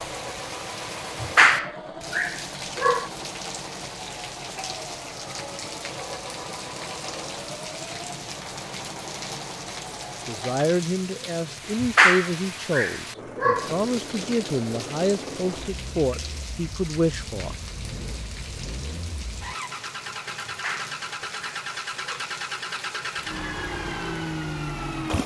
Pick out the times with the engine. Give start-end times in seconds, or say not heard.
0.0-10.6, 13.1-25.2.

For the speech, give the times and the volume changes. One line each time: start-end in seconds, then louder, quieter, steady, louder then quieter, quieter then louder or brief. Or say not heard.
10.2-17.6 steady.